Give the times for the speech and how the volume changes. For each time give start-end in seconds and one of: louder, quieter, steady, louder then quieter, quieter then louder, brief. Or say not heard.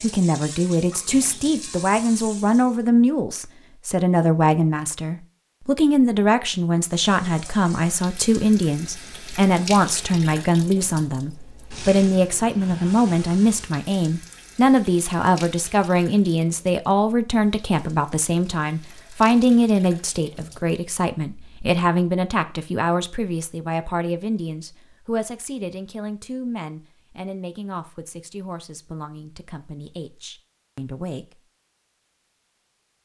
0.0-31.4 quieter.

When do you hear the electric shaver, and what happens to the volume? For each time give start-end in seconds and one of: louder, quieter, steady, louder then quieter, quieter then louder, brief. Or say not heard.
not heard.